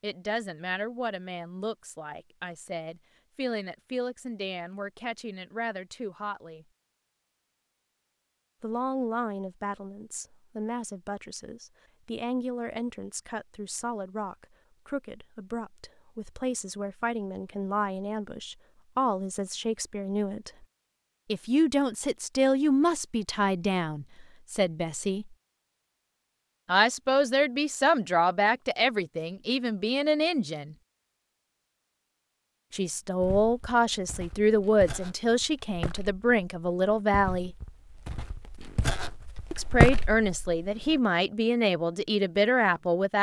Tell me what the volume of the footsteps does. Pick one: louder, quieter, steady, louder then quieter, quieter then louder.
louder.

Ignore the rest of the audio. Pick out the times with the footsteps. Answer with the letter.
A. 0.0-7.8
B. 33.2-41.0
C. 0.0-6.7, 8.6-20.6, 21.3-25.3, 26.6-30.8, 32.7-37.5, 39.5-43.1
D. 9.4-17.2
B.